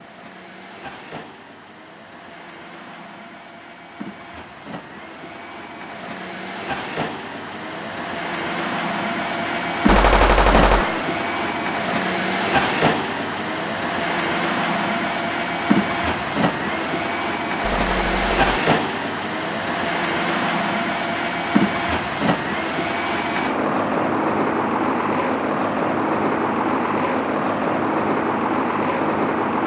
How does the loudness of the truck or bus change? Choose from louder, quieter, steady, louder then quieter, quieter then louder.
louder.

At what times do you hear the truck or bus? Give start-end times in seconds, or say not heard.
0.0-29.6.